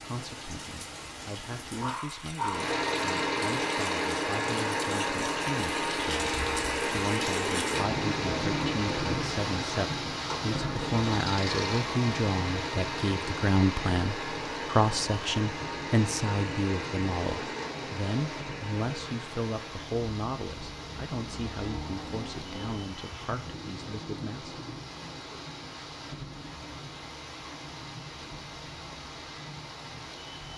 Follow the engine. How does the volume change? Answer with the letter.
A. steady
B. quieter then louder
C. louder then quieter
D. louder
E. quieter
E.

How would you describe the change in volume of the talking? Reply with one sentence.
The loudness of the talking goes up, then down.